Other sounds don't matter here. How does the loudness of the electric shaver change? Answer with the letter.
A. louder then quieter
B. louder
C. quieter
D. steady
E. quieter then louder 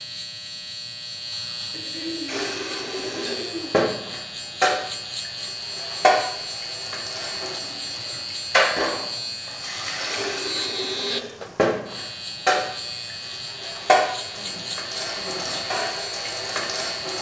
D.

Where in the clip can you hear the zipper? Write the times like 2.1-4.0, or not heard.
not heard.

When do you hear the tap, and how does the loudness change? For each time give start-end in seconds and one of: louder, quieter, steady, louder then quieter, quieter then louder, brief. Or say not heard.
2.2-17.1 steady.